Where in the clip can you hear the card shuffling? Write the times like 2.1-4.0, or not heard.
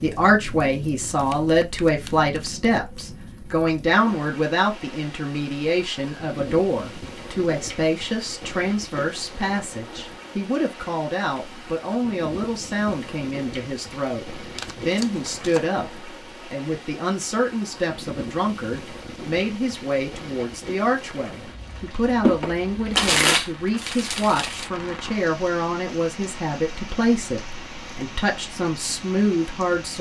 1.0-3.0, 14.6-15.7, 22.2-24.7.